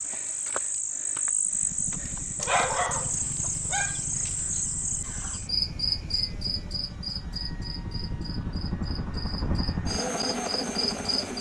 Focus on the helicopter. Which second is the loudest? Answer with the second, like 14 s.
10 s.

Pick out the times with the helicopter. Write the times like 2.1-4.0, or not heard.
1.4-11.3.